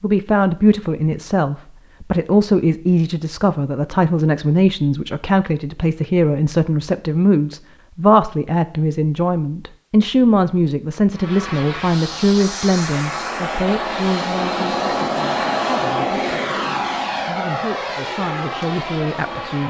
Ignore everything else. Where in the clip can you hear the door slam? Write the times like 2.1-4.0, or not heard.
not heard.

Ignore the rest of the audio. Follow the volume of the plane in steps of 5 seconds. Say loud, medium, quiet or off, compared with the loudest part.
off, off, loud, loud.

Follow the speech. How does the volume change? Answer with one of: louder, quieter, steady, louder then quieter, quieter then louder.
quieter.